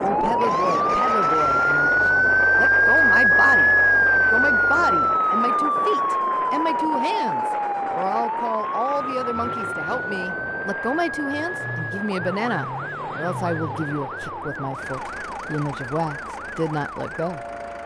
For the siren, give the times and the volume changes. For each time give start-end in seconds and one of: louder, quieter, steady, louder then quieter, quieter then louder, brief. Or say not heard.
0.0-17.8 quieter.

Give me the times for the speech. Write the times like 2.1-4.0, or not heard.
0.0-17.4.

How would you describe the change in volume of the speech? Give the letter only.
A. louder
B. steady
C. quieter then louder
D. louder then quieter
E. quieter
B.